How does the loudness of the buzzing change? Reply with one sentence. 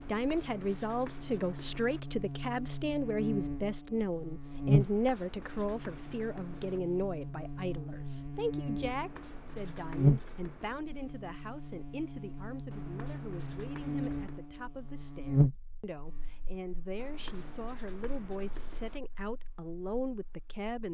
The loudness of the buzzing goes up, then down.